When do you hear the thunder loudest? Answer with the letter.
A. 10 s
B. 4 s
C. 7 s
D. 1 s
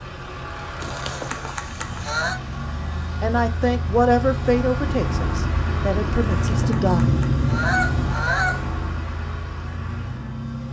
C.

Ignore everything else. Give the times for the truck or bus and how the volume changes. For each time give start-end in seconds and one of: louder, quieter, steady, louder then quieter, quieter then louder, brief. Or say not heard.
0.0-10.6 louder then quieter.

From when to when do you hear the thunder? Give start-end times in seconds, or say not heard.
4.8-8.2.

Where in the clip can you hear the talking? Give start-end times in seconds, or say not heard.
3.2-7.0.